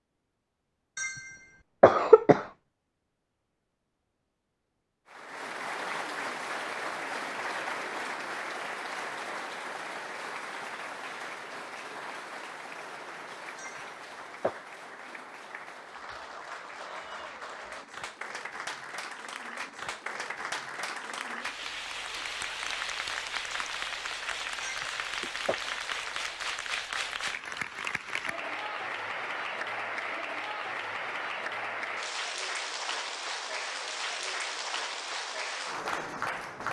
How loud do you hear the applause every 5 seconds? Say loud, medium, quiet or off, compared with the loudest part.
off, loud, medium, medium, loud, loud, loud, loud.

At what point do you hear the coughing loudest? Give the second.
2 s.